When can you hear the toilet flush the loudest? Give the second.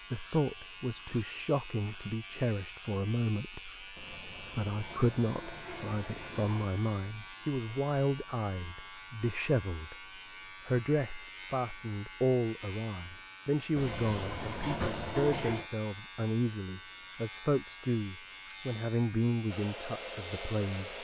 15 s.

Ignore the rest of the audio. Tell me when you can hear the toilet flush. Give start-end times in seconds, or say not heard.
4.0-6.8, 13.8-15.7.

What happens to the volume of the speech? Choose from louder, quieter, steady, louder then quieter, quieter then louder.
steady.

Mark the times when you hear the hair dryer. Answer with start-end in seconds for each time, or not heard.
19.4-20.9.